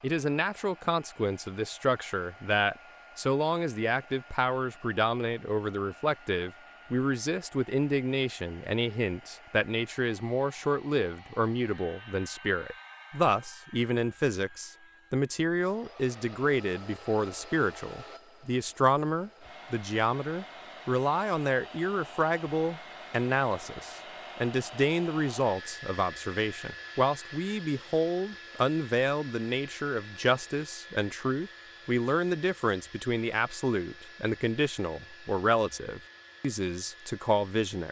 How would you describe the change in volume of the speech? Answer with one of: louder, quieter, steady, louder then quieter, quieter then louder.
steady.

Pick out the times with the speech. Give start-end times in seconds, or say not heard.
0.0-37.8.